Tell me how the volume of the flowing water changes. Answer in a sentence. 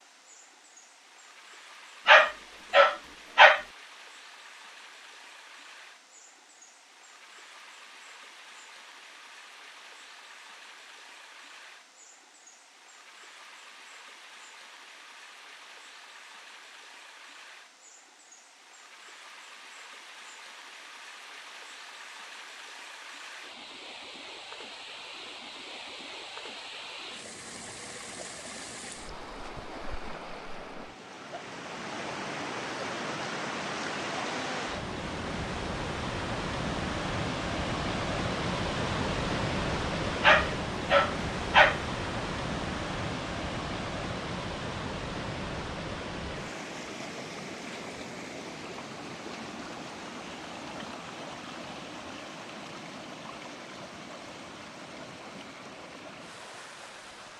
The volume of the flowing water goes up, then down.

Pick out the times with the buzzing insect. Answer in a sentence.
You can't hear the buzzing insect here.